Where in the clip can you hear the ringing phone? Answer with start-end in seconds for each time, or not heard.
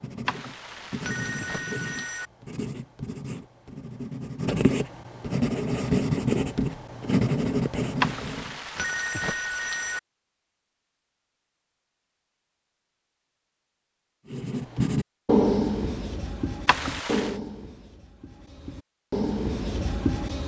0.2-2.3, 8.0-10.0, 16.6-17.4.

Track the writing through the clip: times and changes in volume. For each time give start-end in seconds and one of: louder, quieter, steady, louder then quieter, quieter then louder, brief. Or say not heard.
0.0-8.6 louder
14.3-20.4 quieter then louder.